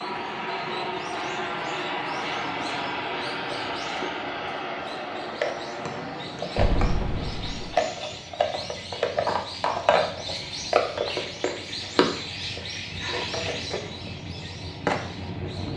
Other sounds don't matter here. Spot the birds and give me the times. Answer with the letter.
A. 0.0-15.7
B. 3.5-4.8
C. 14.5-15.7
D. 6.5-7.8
A.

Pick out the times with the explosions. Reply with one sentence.
You can hear the explosions from 6.5 to 7.8 s.